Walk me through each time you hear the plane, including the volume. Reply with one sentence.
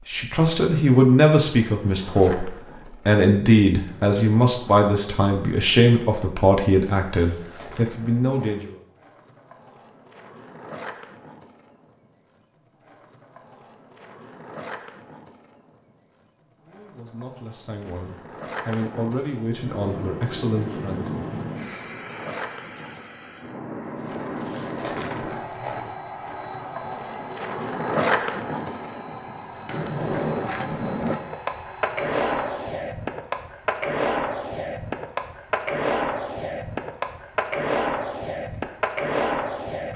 The plane can be heard from 19.5 to 32.9 s, getting quieter.